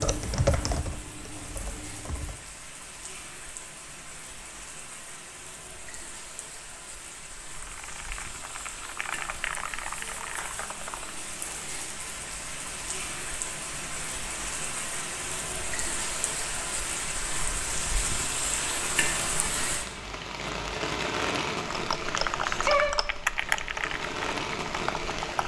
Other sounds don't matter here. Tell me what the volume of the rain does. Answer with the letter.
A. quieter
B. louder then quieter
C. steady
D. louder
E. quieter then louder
D.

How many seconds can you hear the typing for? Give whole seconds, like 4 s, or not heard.
10 s.